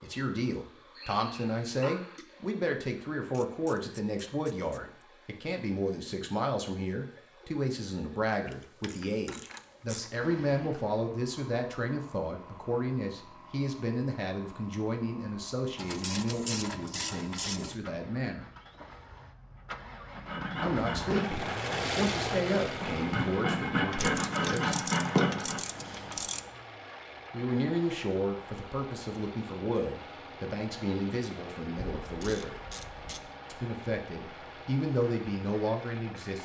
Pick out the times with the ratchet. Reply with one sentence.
The ratchet can be heard from 3.3 to 4.8 s, from 8.4 to 10.1 s, from 15.8 to 17.8 s, from 23.9 to 26.4 s and from 31.8 to 33.4 s.